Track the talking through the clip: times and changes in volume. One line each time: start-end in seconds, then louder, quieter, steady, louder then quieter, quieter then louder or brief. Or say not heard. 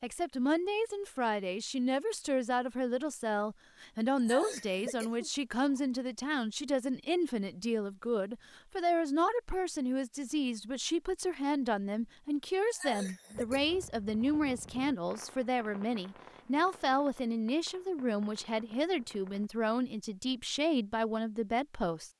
0.0-22.1 steady.